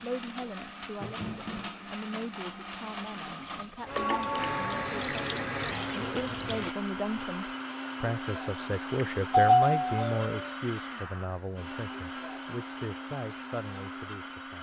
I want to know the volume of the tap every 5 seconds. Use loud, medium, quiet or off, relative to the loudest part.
medium, loud, off.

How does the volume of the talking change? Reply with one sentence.
The loudness of the talking goes up, then down.